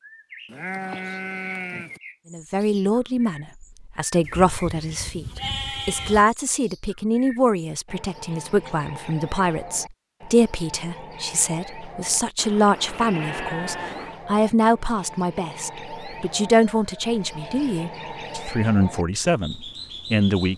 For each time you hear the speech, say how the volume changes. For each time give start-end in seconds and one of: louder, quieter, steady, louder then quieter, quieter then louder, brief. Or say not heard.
2.3-20.5 steady.